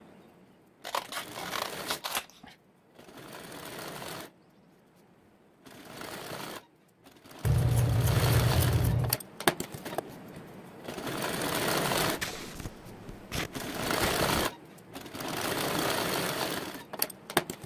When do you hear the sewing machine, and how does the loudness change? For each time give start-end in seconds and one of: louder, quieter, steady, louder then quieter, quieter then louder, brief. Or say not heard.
0.0-17.6 louder.